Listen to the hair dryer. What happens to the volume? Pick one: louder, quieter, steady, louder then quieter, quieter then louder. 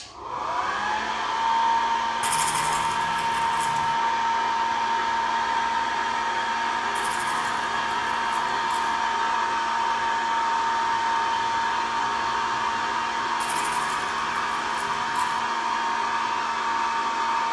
steady.